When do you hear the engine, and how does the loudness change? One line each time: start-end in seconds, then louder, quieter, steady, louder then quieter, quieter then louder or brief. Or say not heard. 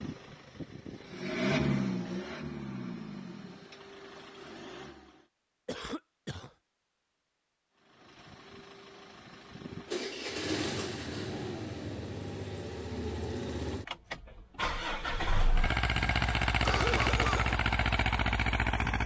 0.0-5.2 louder then quieter
8.0-19.0 louder.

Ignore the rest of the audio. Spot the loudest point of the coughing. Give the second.
17 s.